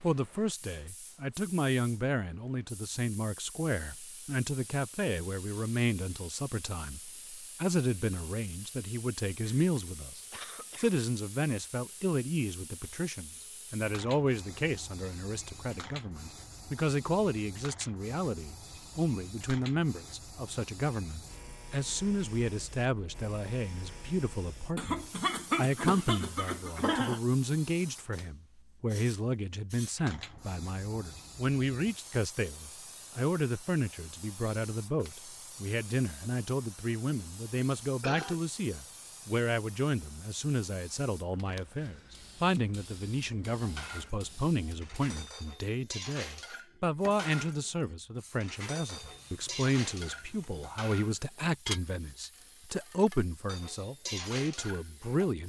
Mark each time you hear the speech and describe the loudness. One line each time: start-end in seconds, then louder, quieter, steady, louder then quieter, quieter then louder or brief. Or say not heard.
0.0-55.4 steady.